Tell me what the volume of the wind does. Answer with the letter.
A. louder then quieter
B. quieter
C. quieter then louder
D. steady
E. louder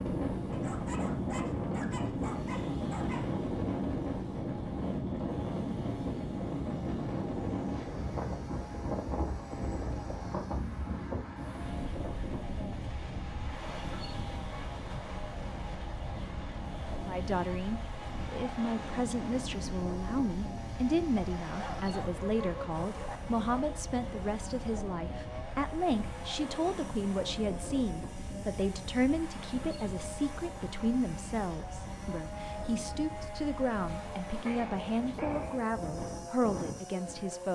B.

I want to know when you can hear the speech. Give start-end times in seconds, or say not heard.
17.1-37.5.